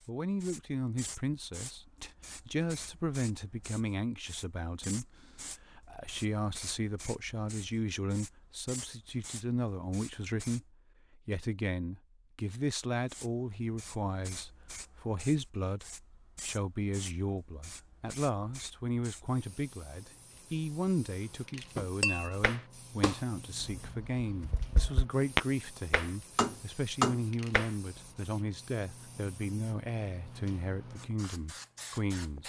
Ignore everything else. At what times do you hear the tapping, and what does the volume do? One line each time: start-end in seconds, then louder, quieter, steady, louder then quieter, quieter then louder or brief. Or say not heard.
21.8-27.7 quieter then louder.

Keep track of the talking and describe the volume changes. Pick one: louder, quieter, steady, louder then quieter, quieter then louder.
steady.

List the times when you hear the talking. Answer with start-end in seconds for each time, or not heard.
0.1-32.4.